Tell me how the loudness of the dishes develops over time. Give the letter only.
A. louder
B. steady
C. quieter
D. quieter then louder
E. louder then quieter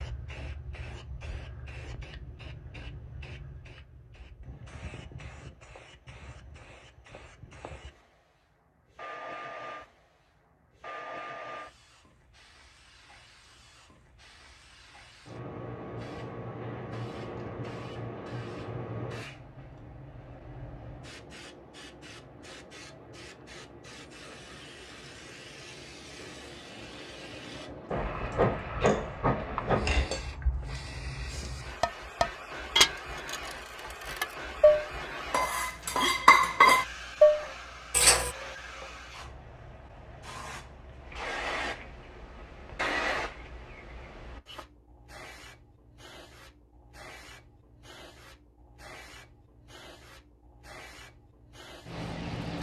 A.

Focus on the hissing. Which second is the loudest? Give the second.
29 s.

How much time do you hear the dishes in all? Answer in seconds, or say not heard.
10 s.